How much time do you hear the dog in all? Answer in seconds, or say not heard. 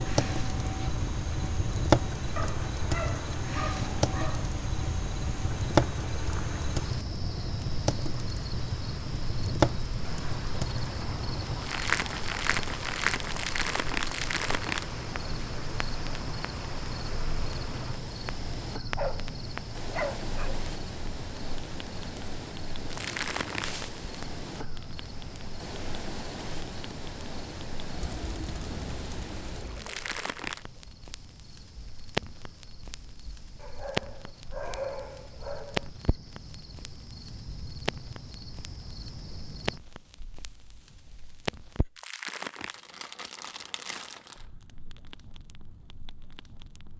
6 s.